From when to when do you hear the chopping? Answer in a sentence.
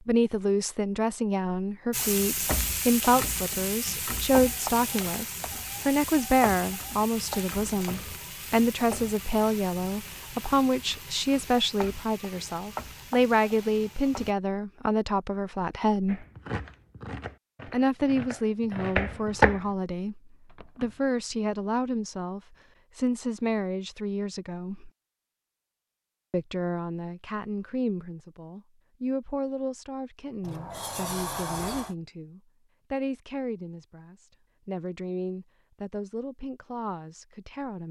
The chopping can be heard from 16.1 to 19.7 s.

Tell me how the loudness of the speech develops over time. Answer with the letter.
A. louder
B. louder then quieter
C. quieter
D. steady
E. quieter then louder
C.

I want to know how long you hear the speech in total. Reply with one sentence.
You can hear the speech for 35 seconds altogether.